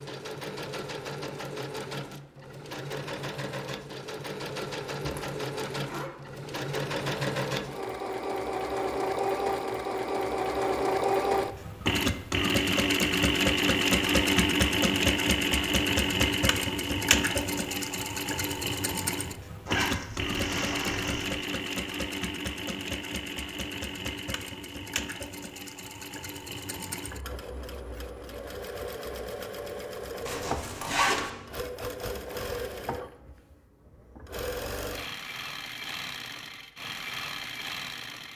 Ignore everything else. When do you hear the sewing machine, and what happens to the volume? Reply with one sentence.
You can hear the sewing machine from 0.0 to 38.3 s, getting louder then quieter.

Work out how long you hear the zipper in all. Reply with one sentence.
The zipper can be heard for 4 seconds in total.